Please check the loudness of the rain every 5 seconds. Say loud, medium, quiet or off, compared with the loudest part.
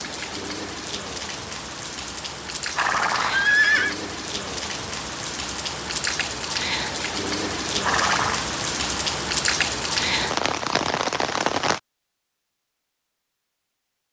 medium, loud, loud.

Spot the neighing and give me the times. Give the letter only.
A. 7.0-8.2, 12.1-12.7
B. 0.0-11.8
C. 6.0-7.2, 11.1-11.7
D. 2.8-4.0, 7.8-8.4
D.